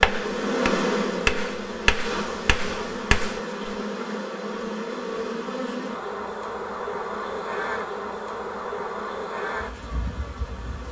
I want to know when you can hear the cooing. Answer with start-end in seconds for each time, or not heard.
not heard.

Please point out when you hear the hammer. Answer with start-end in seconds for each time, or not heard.
0.0-3.4.